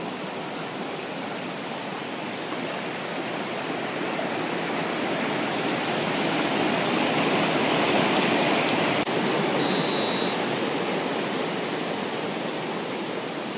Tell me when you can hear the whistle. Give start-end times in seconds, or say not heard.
9.6-10.3.